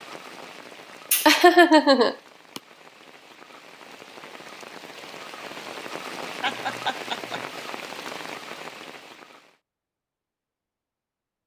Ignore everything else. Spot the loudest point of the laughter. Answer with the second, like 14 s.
2 s.